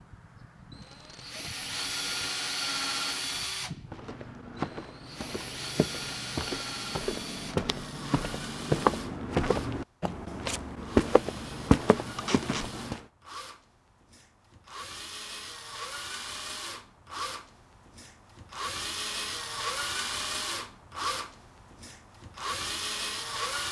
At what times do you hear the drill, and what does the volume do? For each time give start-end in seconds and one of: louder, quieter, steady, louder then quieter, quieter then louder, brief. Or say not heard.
0.0-23.6 quieter then louder.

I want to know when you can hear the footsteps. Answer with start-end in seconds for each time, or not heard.
3.9-13.0.